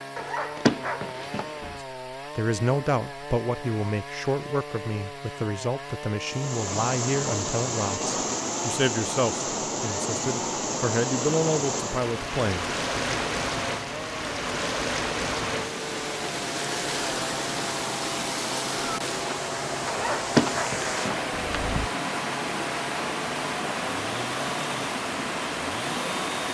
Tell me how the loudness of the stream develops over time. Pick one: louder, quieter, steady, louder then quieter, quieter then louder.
steady.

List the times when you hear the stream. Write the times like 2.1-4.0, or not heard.
6.2-26.4.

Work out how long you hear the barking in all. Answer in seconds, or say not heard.
4 s.